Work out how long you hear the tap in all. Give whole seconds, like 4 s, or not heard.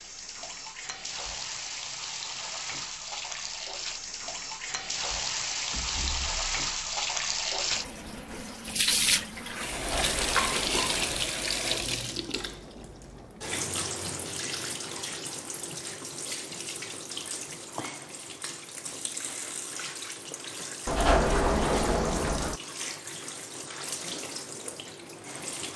26 s.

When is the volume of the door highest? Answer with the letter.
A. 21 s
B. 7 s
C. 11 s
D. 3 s
A.